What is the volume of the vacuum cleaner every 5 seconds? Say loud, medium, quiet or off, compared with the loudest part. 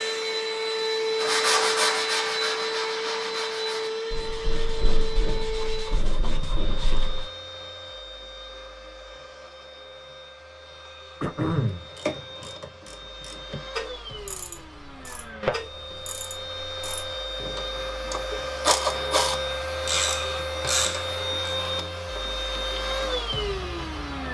loud, medium, quiet, loud, loud.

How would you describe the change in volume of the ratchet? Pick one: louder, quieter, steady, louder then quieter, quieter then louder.
quieter then louder.